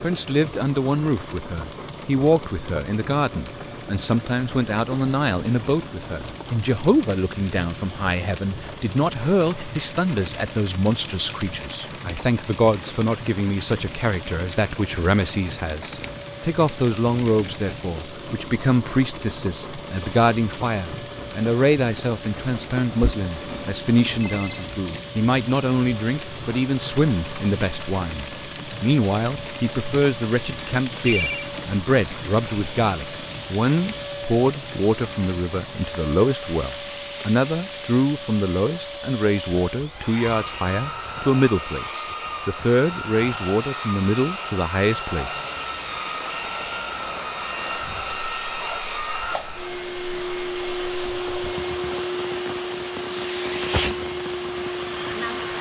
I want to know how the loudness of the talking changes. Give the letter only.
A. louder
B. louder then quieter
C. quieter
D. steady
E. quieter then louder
D.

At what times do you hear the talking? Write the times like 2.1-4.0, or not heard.
0.0-45.4.